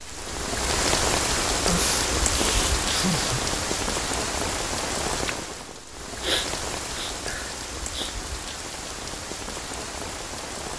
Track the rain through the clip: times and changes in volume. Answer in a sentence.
The rain can be heard from 0.0 to 10.7 s, getting quieter.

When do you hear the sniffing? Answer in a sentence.
You can hear the sniffing from 1.6 to 3.4 s and from 6.2 to 8.2 s.